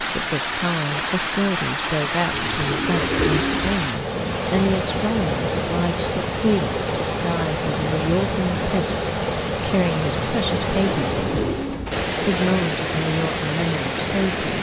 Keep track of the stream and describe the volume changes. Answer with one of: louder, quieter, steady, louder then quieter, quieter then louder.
steady.